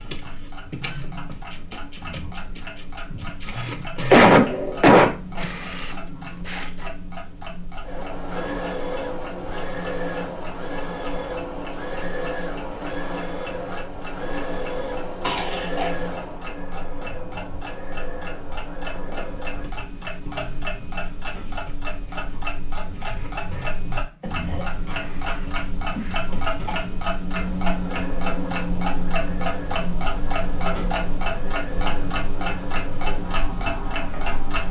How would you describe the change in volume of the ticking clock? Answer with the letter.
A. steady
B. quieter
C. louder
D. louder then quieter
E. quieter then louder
C.